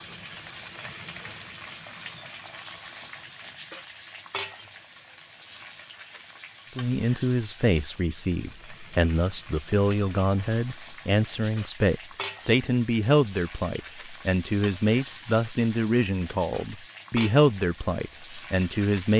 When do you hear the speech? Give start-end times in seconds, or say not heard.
6.8-19.1.